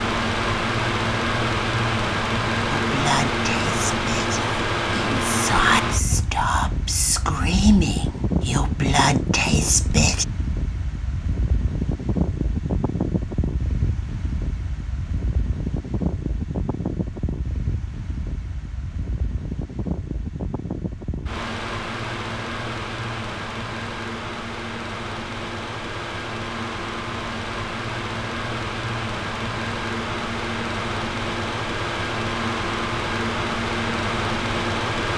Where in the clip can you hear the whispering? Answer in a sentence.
You can hear the whispering from 2.7 to 10.2 s.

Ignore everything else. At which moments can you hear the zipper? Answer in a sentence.
You can't hear the zipper here.